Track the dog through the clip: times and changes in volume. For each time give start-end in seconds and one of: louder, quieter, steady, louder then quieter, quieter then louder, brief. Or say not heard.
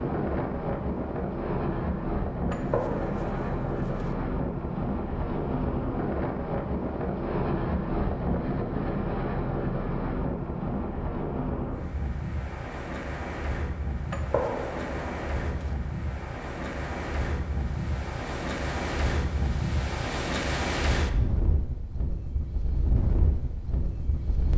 not heard.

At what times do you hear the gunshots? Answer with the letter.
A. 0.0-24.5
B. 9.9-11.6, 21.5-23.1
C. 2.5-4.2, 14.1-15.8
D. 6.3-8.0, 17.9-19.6
C.